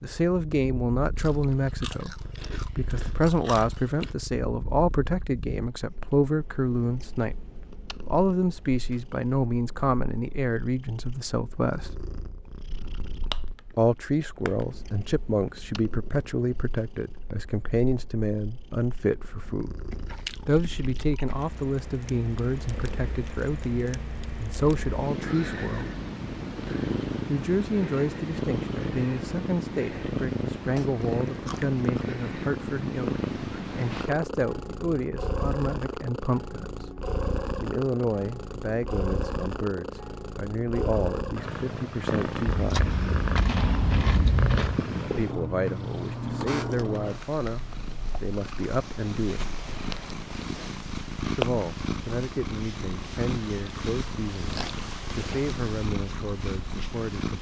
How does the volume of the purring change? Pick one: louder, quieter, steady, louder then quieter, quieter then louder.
louder.